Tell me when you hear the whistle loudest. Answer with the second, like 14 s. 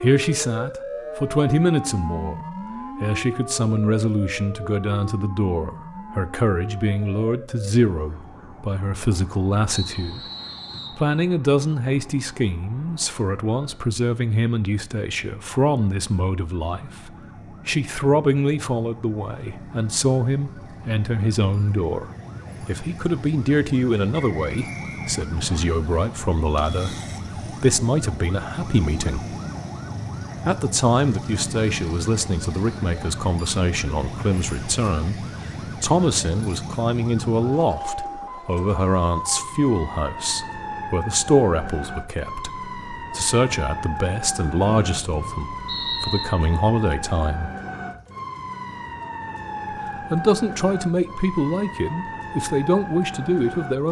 46 s.